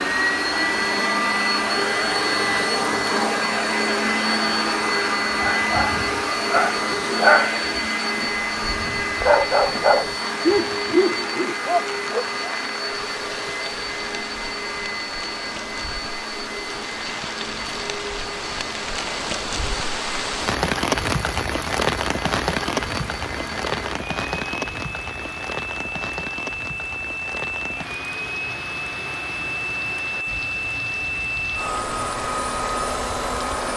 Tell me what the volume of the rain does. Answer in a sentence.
The volume of the rain goes up, then down.